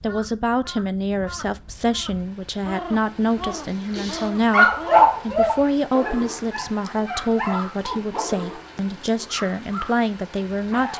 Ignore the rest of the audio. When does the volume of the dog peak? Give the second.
5 s.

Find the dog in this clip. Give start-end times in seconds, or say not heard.
3.9-8.2.